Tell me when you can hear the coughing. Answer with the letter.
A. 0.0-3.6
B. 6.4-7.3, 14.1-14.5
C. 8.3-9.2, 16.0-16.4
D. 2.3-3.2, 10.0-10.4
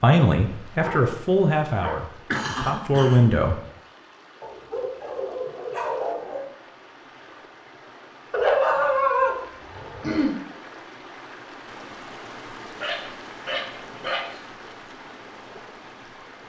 D.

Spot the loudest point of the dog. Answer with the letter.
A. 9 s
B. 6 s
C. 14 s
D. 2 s
A.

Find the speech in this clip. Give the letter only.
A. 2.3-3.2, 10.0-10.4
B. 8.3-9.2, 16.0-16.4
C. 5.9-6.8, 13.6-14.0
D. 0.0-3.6
D.